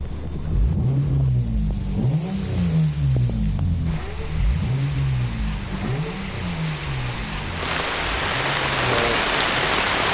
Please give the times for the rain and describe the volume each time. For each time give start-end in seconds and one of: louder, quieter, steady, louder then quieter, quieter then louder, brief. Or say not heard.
0.0-10.0 louder.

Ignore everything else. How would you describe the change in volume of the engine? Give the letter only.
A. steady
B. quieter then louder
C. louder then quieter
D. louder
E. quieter
E.